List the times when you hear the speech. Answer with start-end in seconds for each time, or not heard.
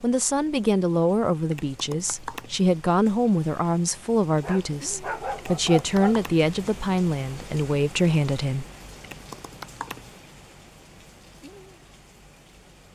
0.0-8.7.